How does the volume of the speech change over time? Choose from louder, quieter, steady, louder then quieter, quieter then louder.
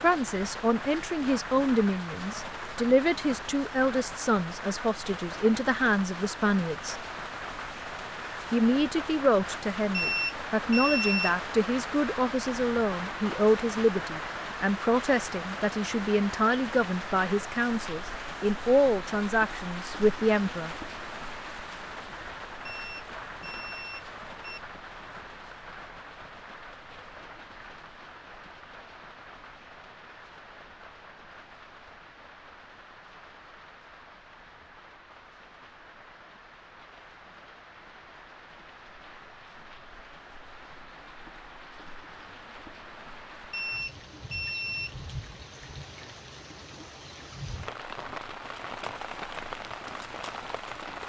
steady.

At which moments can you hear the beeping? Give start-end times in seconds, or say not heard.
9.9-11.6, 22.6-24.6, 43.5-45.0.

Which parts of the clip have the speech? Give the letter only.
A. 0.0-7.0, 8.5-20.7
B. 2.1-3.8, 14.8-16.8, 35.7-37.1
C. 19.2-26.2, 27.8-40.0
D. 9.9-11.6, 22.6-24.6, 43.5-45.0
A.